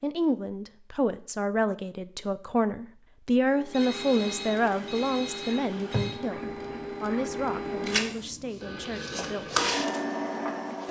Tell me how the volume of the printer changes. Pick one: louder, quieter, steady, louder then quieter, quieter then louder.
louder.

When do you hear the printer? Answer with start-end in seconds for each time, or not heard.
3.5-10.8.